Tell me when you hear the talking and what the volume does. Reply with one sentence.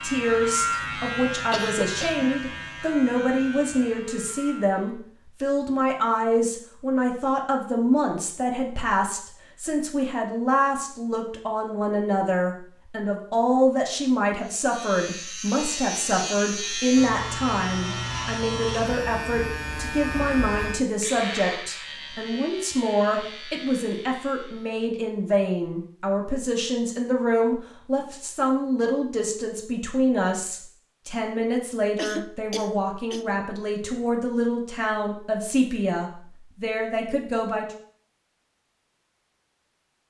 You can hear the talking from 0.0 to 37.6 s, at a steady volume.